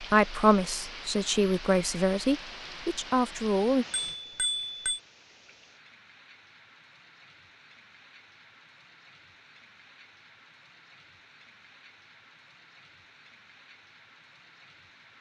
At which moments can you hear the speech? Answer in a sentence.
The speech can be heard from 0.0 to 3.9 s.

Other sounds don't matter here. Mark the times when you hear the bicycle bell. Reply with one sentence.
The bicycle bell can be heard from 3.9 to 5.0 s.